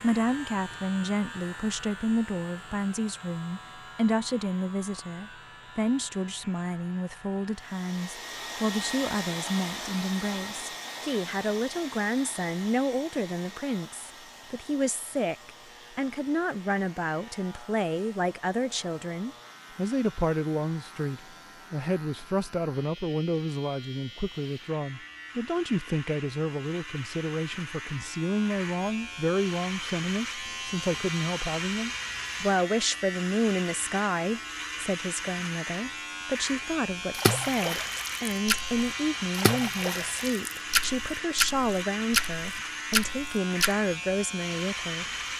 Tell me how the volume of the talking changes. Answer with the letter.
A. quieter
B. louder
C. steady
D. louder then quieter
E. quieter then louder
C.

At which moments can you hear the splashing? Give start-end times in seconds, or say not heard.
37.1-43.7.